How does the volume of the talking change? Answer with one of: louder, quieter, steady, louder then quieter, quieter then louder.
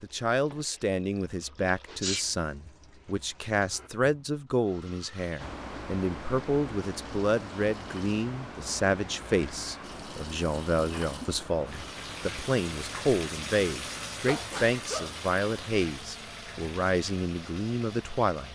steady.